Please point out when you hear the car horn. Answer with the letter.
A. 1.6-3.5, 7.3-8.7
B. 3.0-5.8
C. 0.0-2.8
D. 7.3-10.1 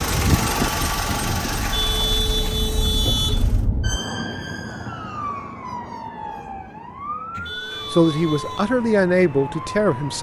A.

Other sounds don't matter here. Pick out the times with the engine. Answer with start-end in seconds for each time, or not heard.
0.0-3.6.